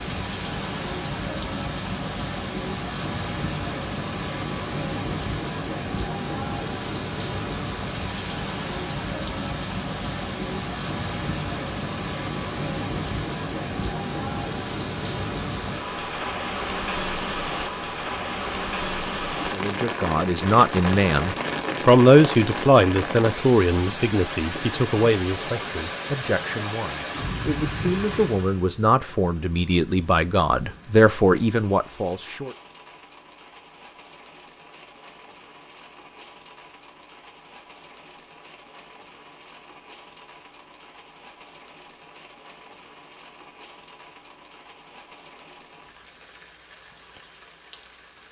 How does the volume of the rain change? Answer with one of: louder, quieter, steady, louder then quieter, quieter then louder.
quieter.